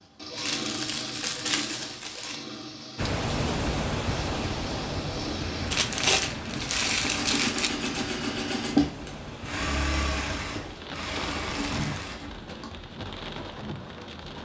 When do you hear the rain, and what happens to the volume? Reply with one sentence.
The rain can be heard from 3.0 to 14.4 s, getting quieter.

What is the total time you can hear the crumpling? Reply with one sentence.
You can hear the crumpling for 5 seconds altogether.